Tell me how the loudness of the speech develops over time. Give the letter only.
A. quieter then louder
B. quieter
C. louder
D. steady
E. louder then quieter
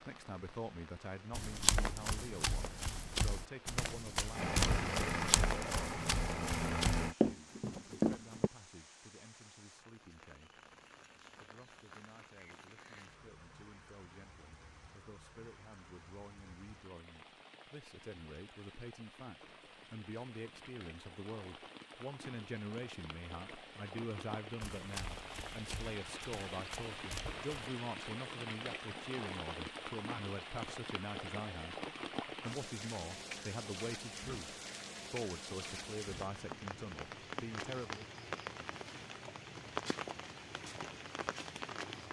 A.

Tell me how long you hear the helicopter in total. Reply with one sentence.
You can hear the helicopter for 3 seconds altogether.